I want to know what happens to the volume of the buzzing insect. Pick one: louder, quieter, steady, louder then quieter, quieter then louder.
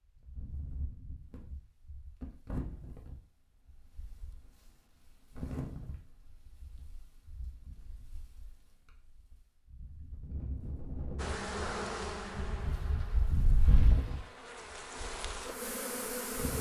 quieter then louder.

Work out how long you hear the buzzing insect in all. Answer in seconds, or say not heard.
5 s.